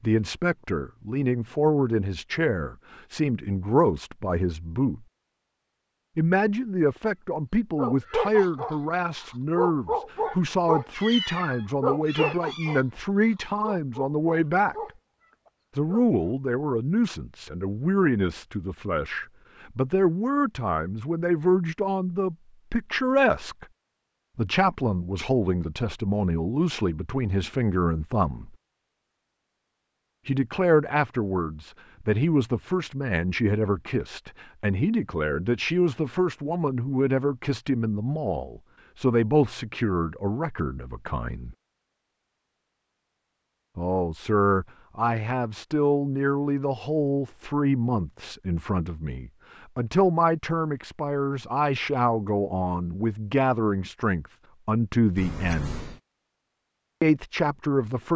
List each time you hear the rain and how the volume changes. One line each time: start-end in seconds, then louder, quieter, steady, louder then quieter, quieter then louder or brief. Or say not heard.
not heard.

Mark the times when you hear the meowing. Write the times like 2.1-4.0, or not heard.
10.9-12.8, 55.1-56.0.